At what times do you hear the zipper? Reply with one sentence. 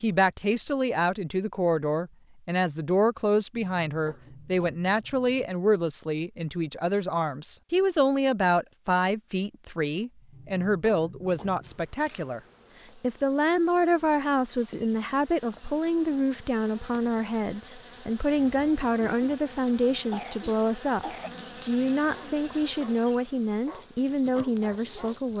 You can't hear the zipper here.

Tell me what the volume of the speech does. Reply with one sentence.
The volume of the speech stays about the same.